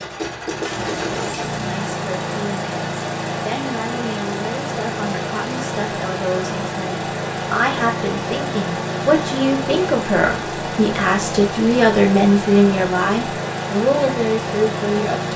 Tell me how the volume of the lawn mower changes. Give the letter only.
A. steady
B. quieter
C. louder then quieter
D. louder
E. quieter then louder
A.